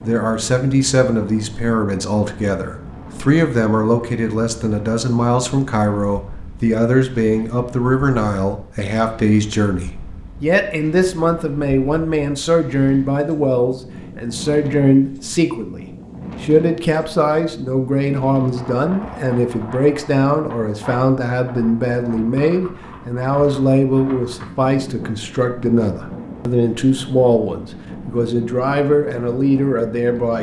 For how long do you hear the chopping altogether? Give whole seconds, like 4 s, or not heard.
not heard.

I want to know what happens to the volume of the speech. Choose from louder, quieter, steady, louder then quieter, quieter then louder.
steady.